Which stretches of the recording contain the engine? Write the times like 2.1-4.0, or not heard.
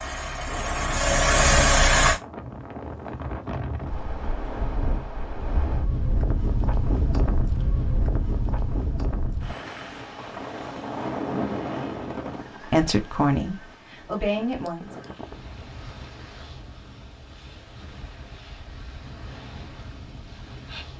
0.0-2.2.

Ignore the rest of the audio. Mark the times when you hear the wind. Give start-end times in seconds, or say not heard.
0.2-20.9.